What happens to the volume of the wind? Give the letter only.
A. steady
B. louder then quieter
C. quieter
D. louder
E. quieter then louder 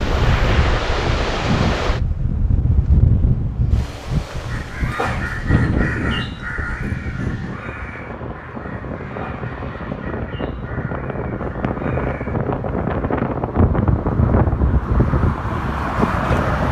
E.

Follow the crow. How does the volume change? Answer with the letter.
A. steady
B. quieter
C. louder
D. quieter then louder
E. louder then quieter
B.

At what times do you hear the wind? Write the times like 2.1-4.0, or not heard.
0.0-16.6.